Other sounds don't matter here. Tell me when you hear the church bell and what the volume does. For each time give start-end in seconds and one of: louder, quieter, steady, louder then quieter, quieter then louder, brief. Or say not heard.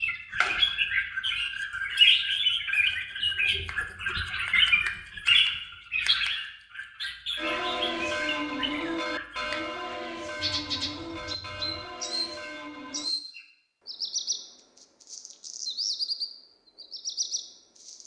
7.3-13.2 quieter.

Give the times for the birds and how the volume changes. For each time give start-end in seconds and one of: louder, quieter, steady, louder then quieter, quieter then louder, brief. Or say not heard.
0.0-18.0 quieter.